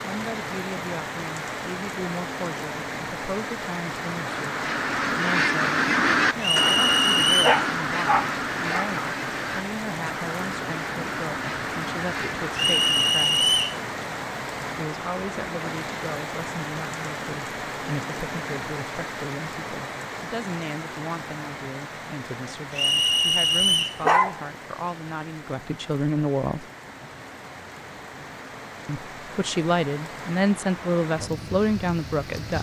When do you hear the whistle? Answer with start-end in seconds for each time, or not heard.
6.4-7.6, 12.6-13.8, 22.8-24.0.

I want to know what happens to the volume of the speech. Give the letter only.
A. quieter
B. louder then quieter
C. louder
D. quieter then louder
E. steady
C.